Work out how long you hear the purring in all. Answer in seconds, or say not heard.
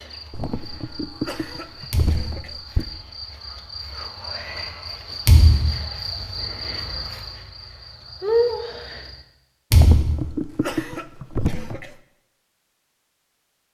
not heard.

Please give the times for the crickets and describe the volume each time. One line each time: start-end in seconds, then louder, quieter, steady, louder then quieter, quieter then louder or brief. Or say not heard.
0.0-9.2 louder.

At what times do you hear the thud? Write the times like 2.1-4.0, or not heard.
1.9-2.5, 5.2-5.8, 9.7-10.3.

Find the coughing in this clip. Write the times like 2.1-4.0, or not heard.
0.3-2.9, 9.7-11.9.